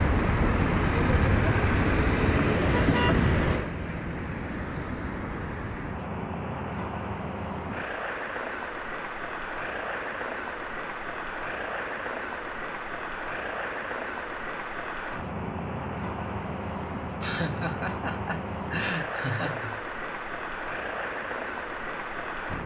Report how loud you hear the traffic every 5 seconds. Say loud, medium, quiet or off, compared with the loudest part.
loud, medium, medium, medium, medium.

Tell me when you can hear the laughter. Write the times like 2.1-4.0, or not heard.
17.2-19.8.